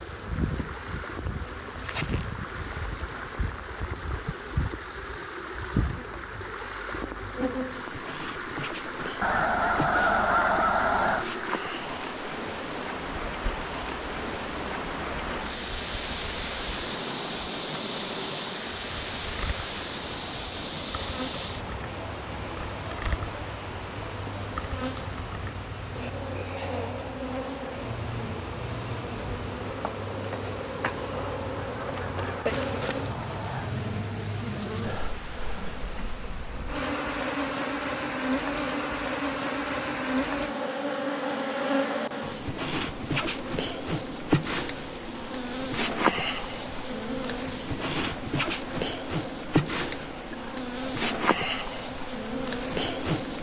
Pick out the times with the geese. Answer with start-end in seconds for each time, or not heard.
9.2-11.2, 31.1-33.8.